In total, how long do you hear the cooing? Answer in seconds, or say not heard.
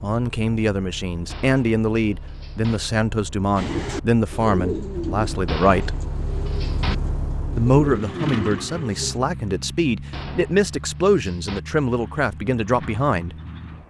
6 s.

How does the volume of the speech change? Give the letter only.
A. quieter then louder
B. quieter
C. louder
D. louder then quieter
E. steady
E.